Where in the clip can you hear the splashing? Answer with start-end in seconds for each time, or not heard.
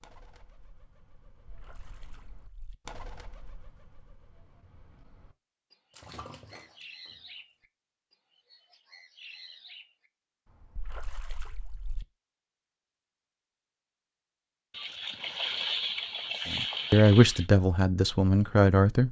1.4-2.8, 5.9-7.2, 10.8-12.1, 14.7-17.4.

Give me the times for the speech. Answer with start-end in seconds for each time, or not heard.
16.4-19.0.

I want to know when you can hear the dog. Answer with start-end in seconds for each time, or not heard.
not heard.